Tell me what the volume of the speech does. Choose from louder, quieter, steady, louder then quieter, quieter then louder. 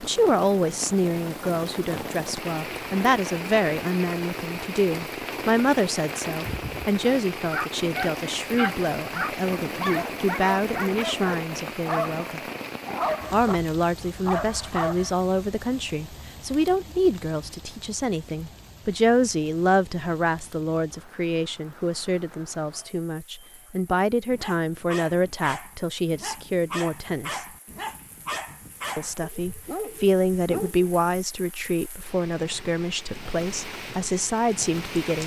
steady.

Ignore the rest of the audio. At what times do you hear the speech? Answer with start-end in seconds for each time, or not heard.
0.0-12.4, 13.3-27.4, 28.9-35.2.